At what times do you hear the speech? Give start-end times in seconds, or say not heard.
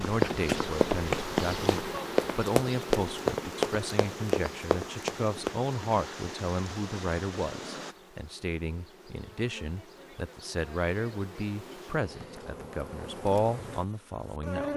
0.0-14.7.